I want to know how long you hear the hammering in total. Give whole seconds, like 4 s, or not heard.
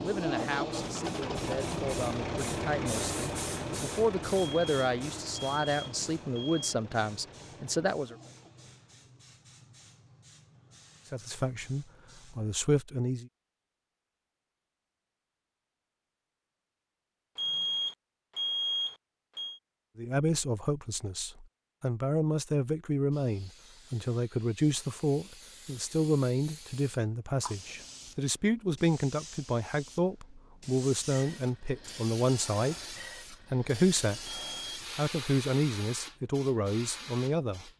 not heard.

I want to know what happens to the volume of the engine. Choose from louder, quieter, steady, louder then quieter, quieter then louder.
quieter.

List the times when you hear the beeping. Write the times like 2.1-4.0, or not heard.
4.3-6.8, 17.4-19.6, 34.2-34.8.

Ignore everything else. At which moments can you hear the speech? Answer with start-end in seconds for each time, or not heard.
0.0-8.2, 11.1-13.3, 19.9-37.7.